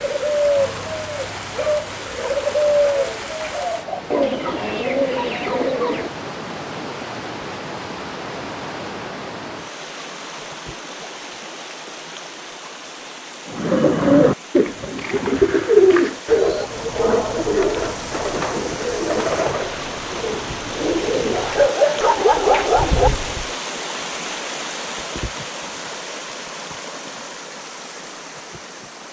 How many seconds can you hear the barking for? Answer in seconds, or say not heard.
4 s.